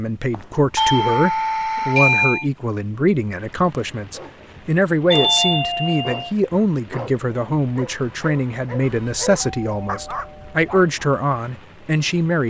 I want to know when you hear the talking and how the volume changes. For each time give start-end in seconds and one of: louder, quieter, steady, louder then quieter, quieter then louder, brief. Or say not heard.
0.0-12.4 steady.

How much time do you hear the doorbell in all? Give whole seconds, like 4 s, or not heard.
5 s.